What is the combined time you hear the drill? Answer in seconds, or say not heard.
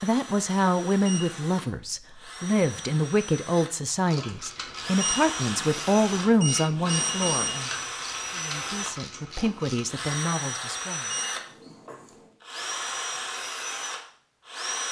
15 s.